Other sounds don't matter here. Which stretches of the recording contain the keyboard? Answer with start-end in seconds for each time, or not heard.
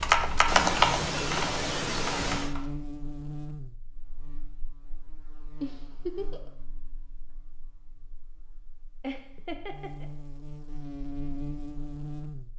0.0-2.6.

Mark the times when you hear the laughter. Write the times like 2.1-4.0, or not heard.
0.5-2.5, 5.6-6.5, 9.0-10.1.